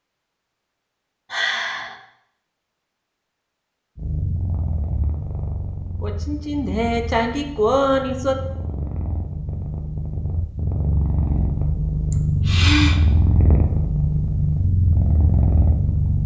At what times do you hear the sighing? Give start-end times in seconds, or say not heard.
1.3-1.9, 6.0-8.4, 12.1-13.0.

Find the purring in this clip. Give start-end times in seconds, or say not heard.
4.0-16.2.